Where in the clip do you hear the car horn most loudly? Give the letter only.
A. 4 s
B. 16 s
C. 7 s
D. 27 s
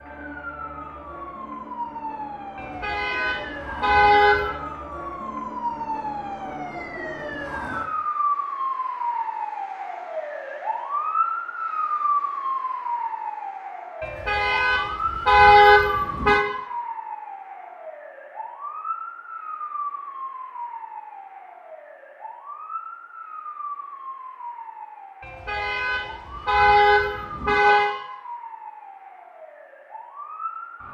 B.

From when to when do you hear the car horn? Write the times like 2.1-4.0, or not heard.
2.5-4.5, 14.0-16.4, 25.2-27.9.